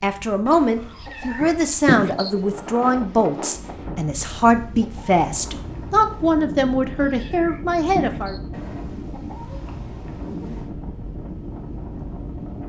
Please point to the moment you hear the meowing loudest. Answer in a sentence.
The loudest moment of the meowing is at 2 seconds.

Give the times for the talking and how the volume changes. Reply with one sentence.
The talking can be heard from 0.0 to 8.3 s, at a steady volume.